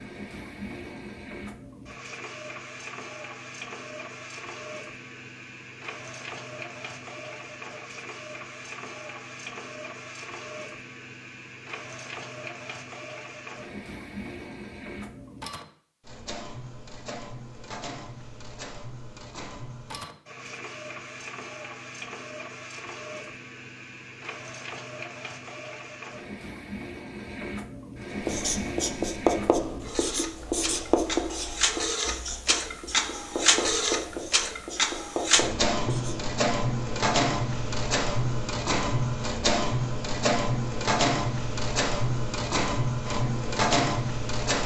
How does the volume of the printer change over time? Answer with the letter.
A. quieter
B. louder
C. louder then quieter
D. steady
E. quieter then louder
B.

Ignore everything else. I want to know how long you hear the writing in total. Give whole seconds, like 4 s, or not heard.
8 s.